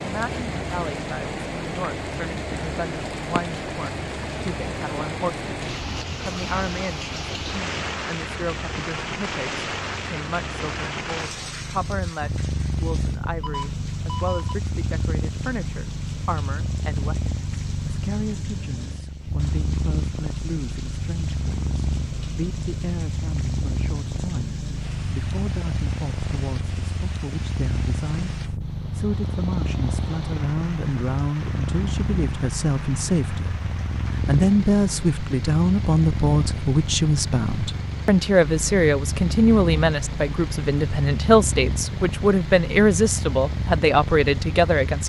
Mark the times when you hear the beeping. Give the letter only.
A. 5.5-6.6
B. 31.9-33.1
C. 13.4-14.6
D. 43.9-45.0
C.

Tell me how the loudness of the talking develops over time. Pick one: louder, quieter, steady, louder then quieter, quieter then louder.
louder.